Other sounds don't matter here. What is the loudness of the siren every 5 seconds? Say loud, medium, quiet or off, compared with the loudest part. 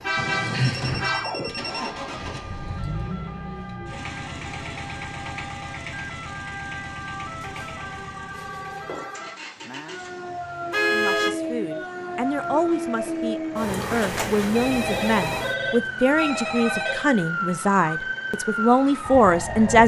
quiet, medium, loud, loud.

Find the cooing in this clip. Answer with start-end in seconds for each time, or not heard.
not heard.